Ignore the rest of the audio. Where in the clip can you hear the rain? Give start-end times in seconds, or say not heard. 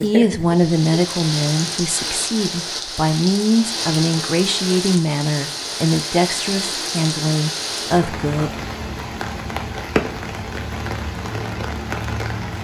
0.0-12.5.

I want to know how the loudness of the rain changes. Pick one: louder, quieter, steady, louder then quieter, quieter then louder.
steady.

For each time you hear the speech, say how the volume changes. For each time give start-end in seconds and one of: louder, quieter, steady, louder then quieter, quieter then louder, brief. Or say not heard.
0.0-8.6 steady.